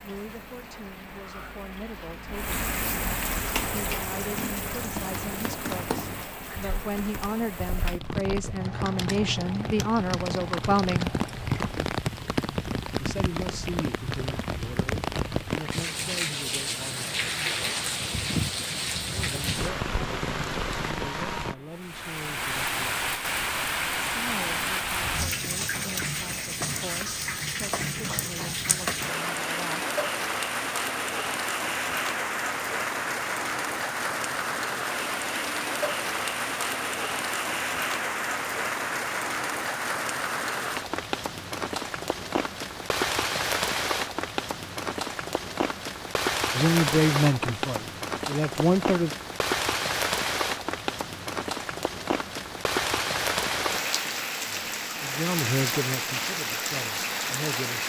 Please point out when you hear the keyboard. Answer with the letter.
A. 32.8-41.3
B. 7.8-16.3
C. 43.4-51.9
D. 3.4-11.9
D.